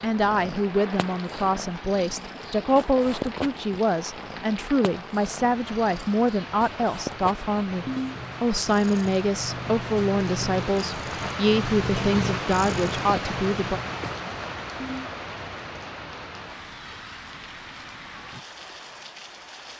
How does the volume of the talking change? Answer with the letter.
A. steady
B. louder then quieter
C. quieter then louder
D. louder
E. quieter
A.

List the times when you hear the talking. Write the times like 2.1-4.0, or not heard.
0.0-13.8.